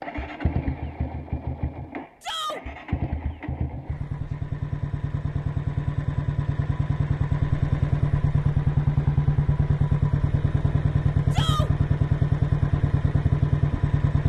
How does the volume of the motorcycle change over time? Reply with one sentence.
The volume of the motorcycle goes up.